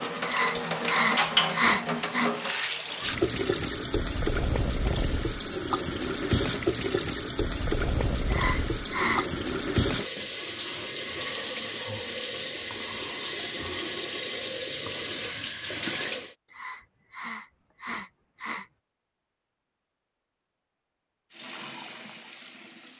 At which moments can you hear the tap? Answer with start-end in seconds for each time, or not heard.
0.0-16.4, 21.3-22.9.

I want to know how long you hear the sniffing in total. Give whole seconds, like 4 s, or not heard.
5 s.